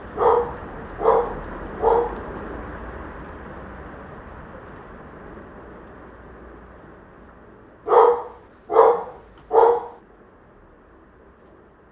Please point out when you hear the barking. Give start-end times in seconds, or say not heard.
0.1-2.2, 7.8-9.9.